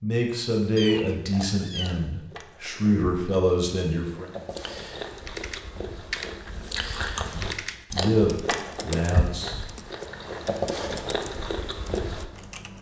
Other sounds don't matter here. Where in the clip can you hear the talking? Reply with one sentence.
You can hear the talking from 0.0 to 4.3 s and from 7.2 to 9.6 s.